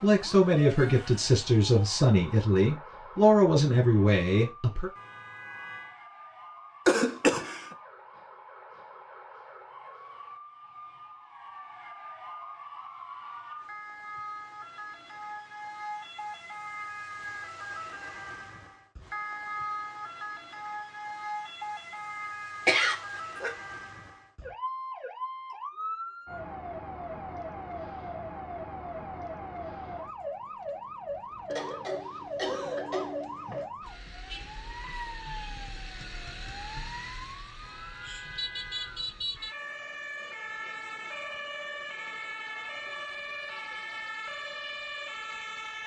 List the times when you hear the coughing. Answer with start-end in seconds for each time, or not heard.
6.8-7.8, 22.6-23.6, 31.4-33.6.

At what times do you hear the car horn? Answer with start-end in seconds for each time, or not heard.
5.0-6.0, 37.6-39.5.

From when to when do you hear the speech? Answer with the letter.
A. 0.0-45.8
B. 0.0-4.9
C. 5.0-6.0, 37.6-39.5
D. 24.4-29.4
B.